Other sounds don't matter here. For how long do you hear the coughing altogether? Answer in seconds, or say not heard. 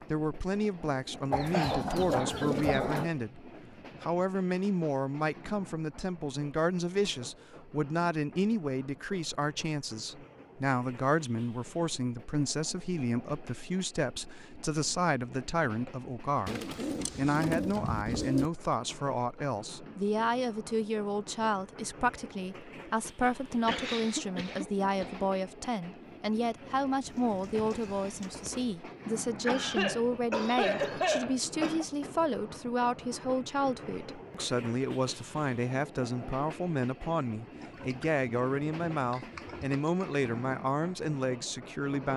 5 s.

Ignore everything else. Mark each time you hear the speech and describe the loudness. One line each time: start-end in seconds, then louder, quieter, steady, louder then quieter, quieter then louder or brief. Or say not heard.
0.0-42.1 steady.